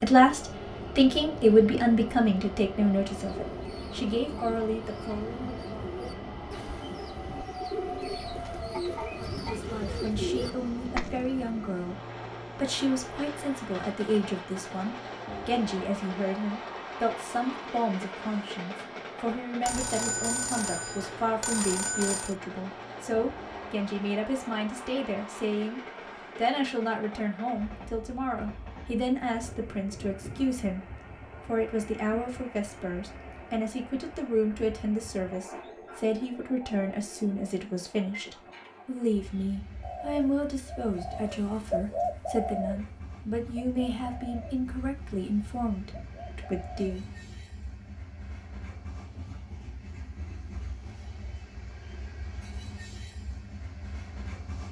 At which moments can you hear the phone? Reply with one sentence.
The phone can be heard from 19.6 to 22.4 s.